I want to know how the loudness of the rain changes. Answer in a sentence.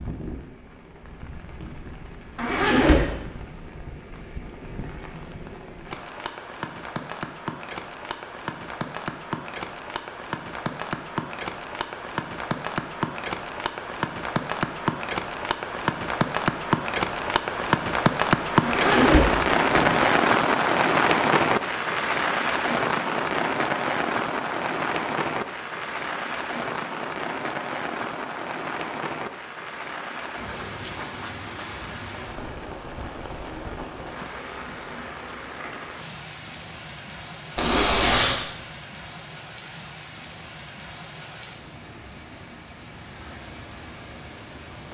The loudness of the rain goes up, then down.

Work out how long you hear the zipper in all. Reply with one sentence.
The zipper can be heard for 3 seconds in total.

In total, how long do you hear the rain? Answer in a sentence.
The rain can be heard for 45 seconds in total.